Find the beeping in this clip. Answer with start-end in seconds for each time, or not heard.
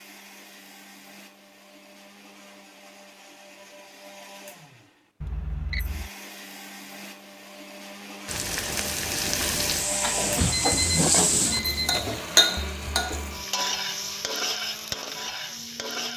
5.2-6.1, 10.0-12.0.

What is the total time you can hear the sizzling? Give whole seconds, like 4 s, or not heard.
8 s.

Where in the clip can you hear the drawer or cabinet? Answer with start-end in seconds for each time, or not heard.
10.2-11.1.